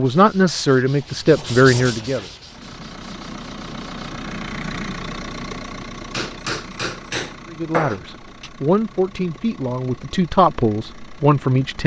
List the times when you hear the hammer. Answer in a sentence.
The hammer can be heard from 6.1 to 8.5 s.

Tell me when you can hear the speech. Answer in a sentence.
You can hear the speech from 0.0 to 2.2 s and from 7.5 to 11.8 s.